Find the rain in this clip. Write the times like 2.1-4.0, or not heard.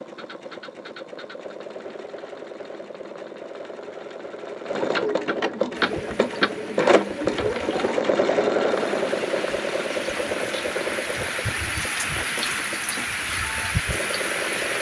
5.8-14.7.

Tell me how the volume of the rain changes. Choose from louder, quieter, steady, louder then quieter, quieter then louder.
louder.